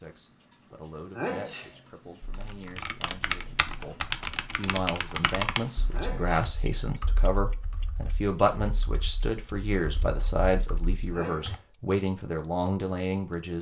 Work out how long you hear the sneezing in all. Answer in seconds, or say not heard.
2 s.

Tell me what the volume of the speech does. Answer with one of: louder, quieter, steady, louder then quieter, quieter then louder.
louder.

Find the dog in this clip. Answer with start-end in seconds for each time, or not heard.
not heard.